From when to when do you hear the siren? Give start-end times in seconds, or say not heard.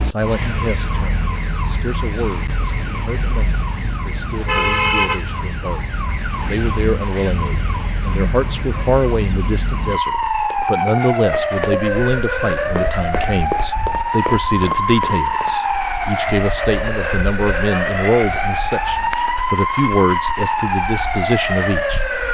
0.0-22.3.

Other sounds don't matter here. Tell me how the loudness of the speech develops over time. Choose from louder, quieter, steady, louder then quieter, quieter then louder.
louder.